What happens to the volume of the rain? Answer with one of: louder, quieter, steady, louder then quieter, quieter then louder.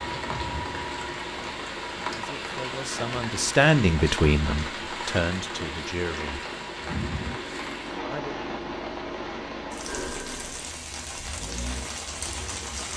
steady.